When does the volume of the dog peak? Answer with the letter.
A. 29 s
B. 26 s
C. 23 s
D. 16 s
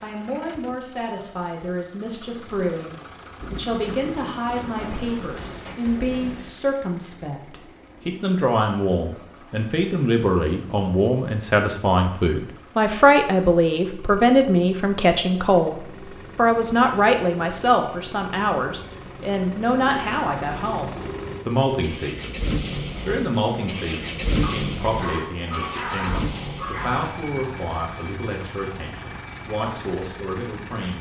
B.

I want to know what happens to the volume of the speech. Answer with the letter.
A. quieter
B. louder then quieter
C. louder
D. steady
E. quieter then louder
B.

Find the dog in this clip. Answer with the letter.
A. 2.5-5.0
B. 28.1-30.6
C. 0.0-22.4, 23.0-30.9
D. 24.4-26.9
D.